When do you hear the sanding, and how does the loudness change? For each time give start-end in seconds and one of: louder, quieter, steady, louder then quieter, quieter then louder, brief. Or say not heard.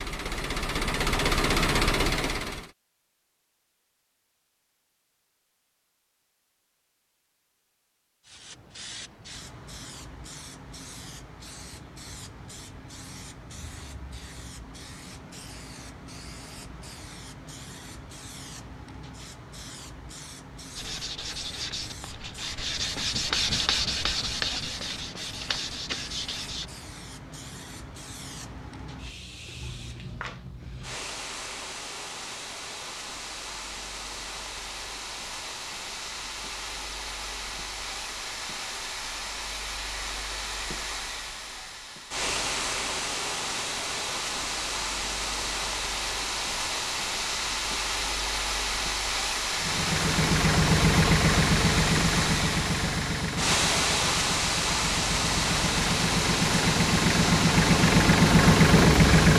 20.8-26.7 louder then quieter.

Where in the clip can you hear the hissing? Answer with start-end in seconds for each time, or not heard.
8.2-59.3.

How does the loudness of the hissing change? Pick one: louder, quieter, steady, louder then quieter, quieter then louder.
louder.